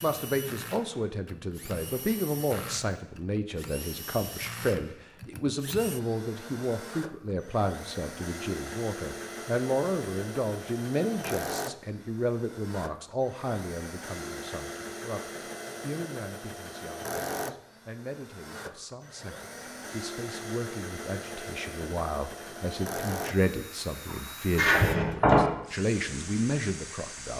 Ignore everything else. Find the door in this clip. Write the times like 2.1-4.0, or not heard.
24.6-25.4.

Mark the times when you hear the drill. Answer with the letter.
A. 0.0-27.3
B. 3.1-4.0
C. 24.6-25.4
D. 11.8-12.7
A.